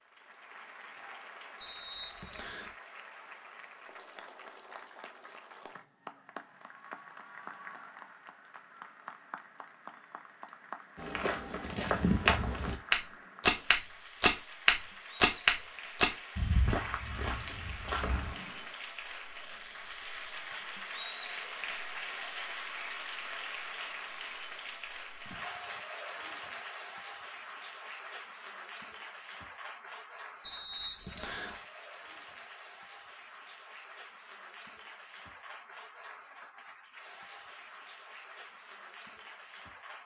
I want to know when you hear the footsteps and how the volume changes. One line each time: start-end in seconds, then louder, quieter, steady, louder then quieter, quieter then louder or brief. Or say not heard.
10.9-18.4 louder then quieter.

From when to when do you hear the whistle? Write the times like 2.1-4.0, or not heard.
1.6-2.7, 18.0-18.8, 30.4-31.6.